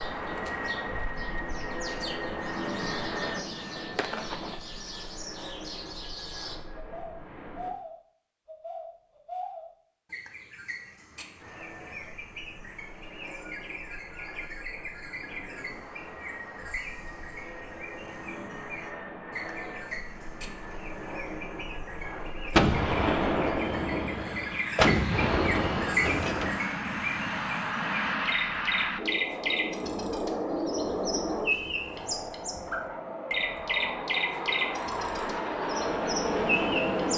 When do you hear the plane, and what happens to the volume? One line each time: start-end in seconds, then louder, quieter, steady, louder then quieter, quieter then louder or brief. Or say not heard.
0.0-7.8 quieter
11.3-37.1 louder.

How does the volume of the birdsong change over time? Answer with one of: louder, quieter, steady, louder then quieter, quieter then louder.
louder.